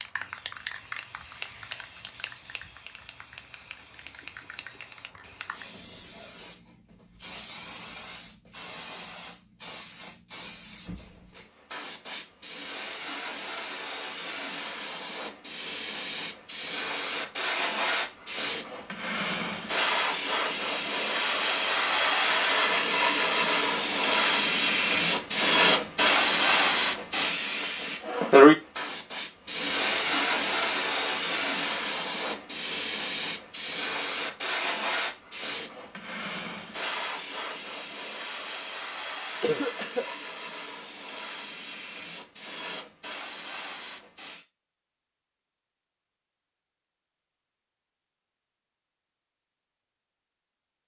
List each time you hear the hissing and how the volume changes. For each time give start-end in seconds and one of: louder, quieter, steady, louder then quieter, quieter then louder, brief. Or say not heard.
0.0-44.5 louder then quieter.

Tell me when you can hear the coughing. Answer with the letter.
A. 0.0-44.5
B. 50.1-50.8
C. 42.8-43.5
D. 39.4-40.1
D.